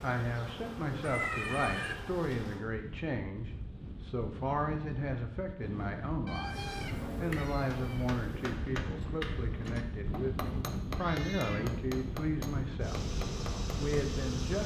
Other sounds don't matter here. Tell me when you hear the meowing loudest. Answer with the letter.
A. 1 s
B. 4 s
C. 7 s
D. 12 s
A.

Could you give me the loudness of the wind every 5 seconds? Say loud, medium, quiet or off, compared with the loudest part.
medium, loud, loud.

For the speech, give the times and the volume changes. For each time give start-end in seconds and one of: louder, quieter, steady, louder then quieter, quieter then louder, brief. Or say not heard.
0.0-13.0 steady
13.8-14.6 brief.